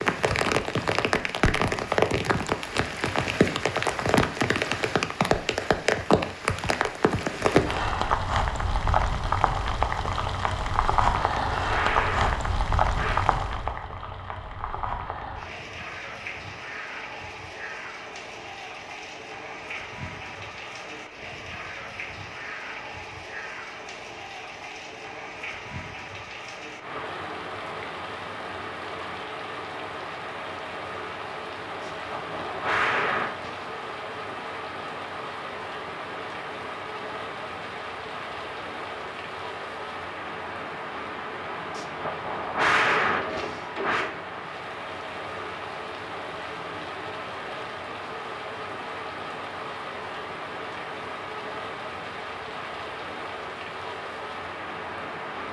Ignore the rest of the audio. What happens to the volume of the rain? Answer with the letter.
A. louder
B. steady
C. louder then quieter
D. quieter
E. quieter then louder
D.